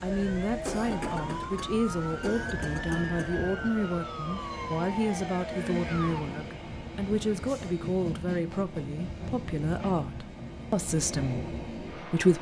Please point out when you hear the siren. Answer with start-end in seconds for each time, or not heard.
0.0-6.2.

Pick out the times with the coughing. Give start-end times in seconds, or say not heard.
0.7-3.3.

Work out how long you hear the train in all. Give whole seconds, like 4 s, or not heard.
12 s.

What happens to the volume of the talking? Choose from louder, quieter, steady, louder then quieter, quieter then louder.
steady.